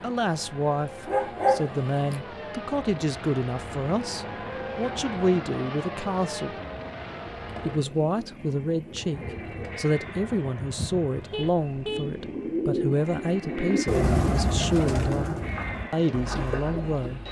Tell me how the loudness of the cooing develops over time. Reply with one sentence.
The loudness of the cooing goes up, then down.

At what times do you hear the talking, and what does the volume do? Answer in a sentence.
The talking can be heard from 0.0 to 6.5 s, at a steady volume; and from 7.7 to 17.2 s, at a steady volume.